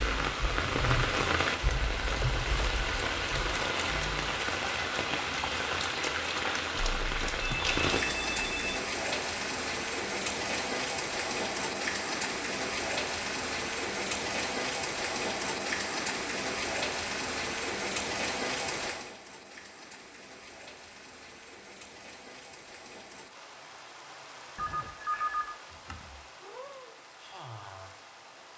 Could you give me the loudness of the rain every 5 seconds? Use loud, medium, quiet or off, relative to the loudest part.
loud, loud, loud, loud, quiet, quiet.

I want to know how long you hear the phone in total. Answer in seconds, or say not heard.
4 s.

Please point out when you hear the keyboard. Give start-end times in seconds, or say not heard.
0.0-4.4.